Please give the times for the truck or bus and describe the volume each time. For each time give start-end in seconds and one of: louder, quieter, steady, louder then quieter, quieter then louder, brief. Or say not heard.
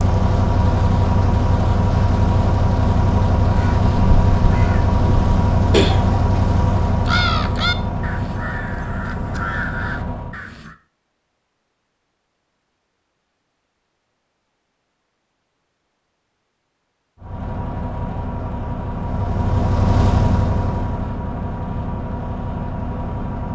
0.0-10.4 quieter
17.2-23.5 louder then quieter.